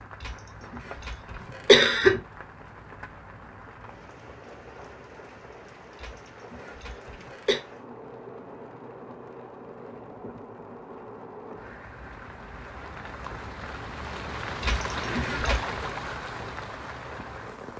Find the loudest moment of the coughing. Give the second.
2 s.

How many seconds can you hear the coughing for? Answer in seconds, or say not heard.
5 s.